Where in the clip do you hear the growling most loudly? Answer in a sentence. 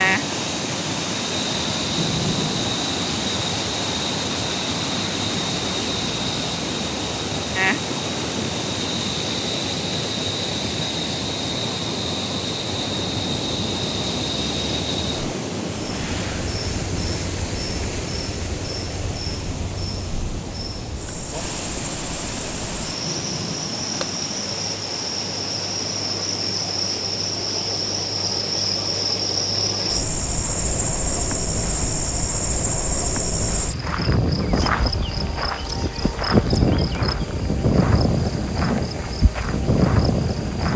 The volume of the growling peaks at 2 seconds.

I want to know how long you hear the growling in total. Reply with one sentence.
The growling can be heard for 2 seconds in total.